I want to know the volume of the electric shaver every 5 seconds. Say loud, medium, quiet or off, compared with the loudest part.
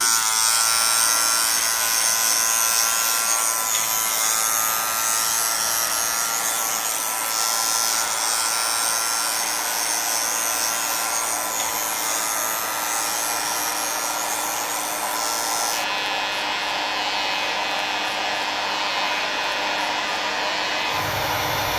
loud, loud, medium, medium, medium.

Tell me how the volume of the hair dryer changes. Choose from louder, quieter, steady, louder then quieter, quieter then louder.
louder.